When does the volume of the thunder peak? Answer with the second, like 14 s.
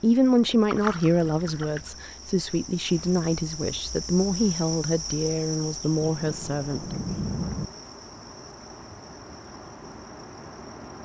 7 s.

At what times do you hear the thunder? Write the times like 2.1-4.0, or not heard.
6.0-7.7.